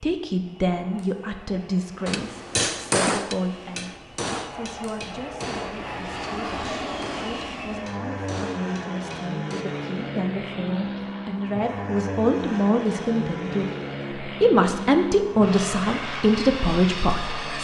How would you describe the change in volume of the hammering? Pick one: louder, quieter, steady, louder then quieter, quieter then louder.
quieter.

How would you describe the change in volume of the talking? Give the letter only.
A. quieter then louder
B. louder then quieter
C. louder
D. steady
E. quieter
A.